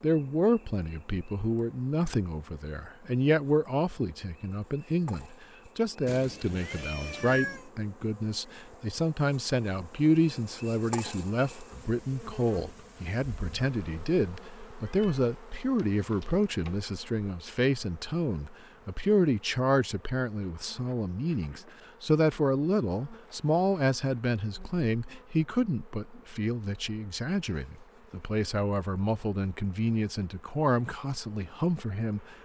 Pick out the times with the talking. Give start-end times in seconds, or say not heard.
0.0-32.4.